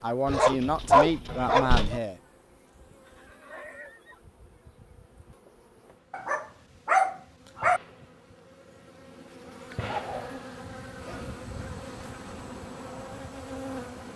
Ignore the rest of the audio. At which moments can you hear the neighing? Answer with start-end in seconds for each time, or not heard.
3.0-4.2.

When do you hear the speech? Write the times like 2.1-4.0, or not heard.
0.0-2.2.